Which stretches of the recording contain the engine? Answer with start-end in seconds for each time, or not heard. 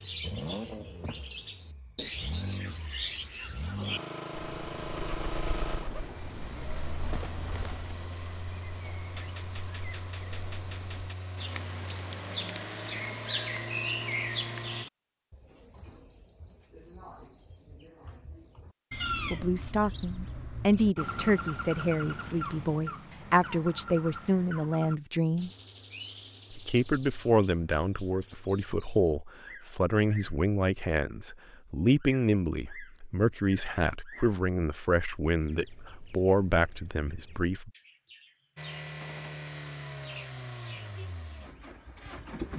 0.0-14.8, 38.5-42.5.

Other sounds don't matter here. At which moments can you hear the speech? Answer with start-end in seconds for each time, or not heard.
19.3-25.5, 26.5-37.7.